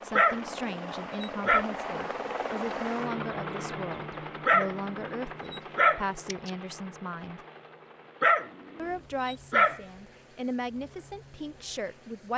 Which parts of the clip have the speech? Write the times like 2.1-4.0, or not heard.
0.0-7.4, 8.8-12.3.